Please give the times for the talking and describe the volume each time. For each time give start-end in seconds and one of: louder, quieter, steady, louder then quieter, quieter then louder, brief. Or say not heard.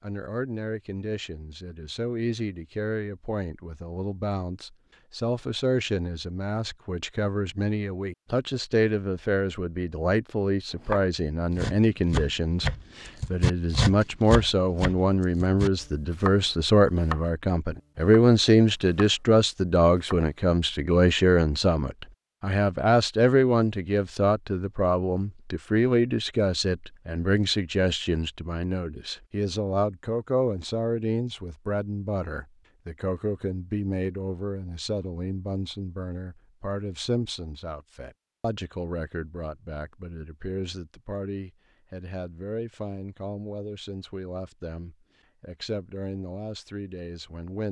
0.0-47.6 louder then quieter.